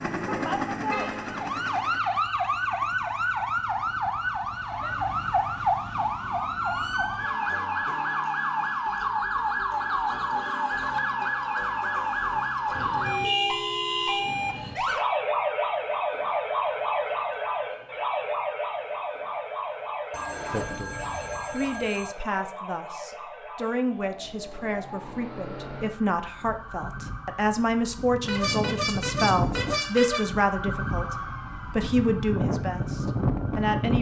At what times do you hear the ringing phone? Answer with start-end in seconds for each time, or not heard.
20.1-22.1.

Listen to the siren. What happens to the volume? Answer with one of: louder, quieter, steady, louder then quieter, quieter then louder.
quieter then louder.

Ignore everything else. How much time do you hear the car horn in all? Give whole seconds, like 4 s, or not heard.
5 s.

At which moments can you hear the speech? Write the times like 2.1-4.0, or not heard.
20.5-33.9.